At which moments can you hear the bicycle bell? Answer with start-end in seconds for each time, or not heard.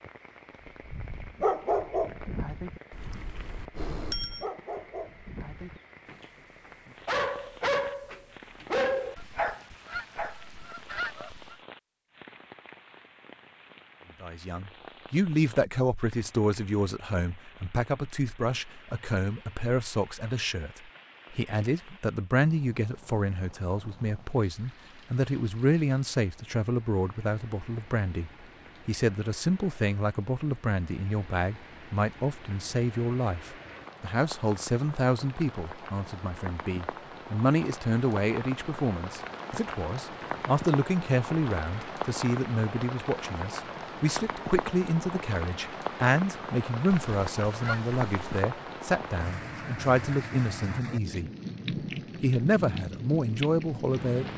2.9-4.5.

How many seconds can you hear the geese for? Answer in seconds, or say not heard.
4 s.